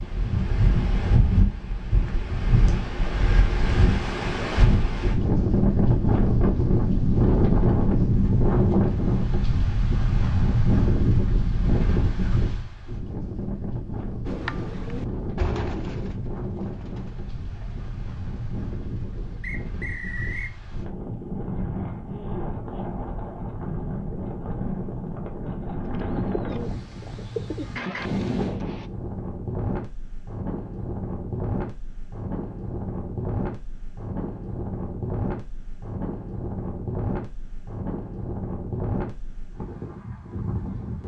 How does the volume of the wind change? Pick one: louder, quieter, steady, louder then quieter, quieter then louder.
quieter.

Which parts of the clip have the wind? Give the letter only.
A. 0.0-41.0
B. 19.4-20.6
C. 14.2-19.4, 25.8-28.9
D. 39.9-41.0
A.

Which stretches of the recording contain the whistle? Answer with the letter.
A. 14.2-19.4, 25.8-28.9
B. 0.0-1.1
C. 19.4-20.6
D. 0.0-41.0
C.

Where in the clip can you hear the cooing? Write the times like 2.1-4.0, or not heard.
14.2-19.4, 25.8-28.9.